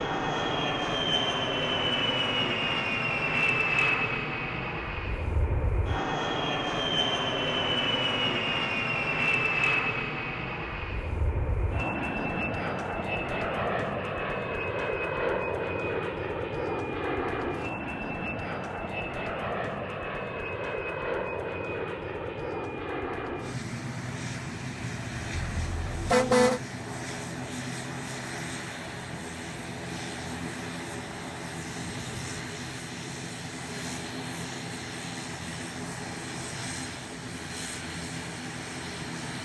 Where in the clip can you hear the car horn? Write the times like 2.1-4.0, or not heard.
25.3-26.6.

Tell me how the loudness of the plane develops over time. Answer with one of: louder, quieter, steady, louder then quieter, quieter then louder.
quieter.